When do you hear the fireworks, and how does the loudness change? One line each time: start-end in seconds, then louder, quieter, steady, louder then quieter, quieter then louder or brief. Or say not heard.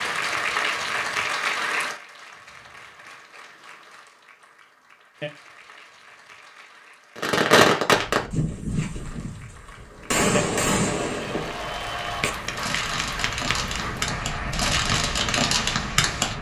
7.2-9.3 brief
10.1-16.3 quieter then louder.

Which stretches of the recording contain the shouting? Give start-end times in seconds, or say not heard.
not heard.